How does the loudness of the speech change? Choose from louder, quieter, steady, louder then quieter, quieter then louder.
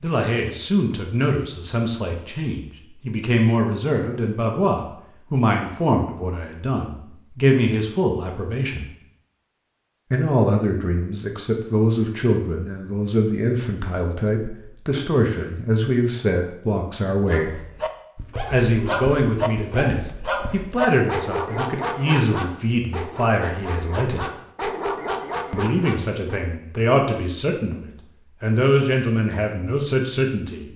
steady.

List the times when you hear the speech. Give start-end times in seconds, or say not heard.
0.0-8.9, 10.1-17.6, 18.5-24.2, 25.5-30.7.